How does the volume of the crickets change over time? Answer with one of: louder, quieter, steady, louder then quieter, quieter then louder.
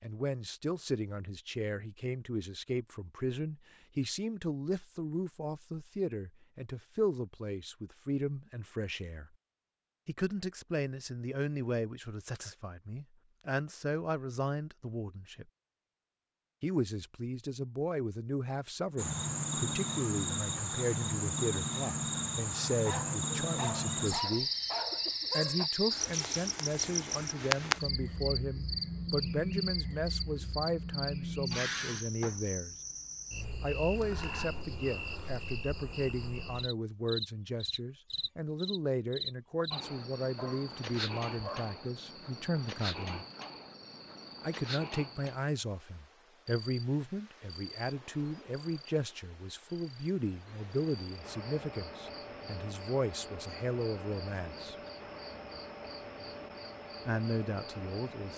quieter.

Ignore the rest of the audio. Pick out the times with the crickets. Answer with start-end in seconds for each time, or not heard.
18.9-58.3.